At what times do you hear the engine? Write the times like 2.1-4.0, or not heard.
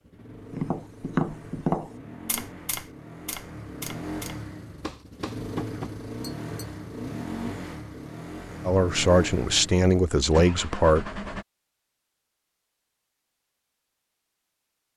0.0-11.4.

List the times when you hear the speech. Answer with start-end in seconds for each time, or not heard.
8.7-11.2.